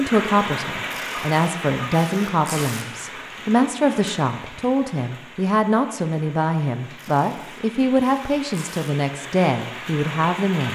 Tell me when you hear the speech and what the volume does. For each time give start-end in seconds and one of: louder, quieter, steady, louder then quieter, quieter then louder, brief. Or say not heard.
0.0-10.6 steady.